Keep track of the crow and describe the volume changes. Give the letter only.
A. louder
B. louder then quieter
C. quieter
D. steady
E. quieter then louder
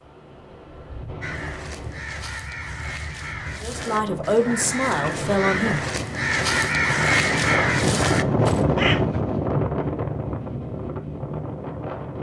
A.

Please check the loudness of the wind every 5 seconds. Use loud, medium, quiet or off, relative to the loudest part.
quiet, loud, medium.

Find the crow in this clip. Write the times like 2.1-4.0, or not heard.
1.2-9.1.